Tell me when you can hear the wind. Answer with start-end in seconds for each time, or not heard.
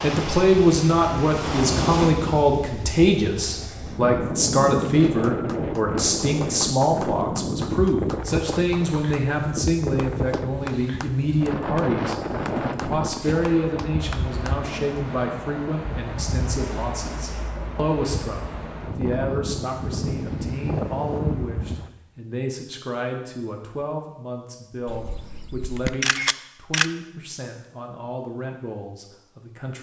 0.0-21.9.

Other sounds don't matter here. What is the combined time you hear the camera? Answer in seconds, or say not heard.
2 s.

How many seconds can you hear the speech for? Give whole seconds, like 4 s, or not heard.
30 s.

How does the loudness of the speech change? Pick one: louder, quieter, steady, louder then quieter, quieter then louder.
quieter.